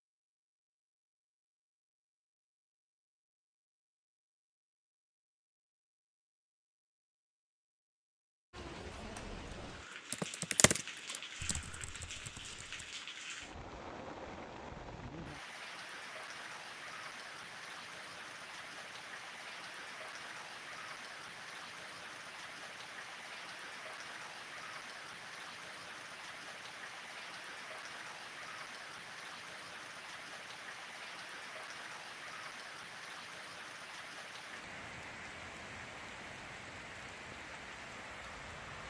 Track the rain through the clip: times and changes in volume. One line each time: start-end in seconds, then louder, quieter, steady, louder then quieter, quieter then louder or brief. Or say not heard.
8.5-38.8 steady.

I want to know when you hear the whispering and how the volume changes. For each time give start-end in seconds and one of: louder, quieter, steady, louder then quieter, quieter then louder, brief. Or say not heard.
not heard.